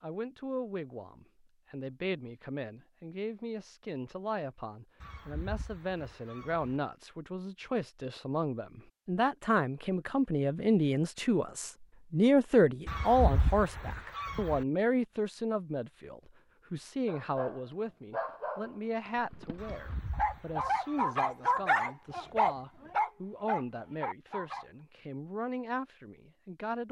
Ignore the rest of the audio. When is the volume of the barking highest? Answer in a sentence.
The volume of the barking peaks at 22 seconds.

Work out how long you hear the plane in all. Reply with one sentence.
The plane can't be heard in this clip.